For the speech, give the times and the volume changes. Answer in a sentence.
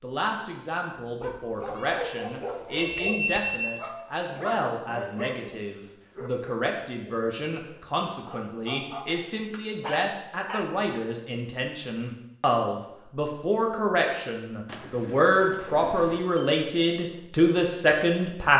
You can hear the speech from 0.0 to 18.5 s, getting louder.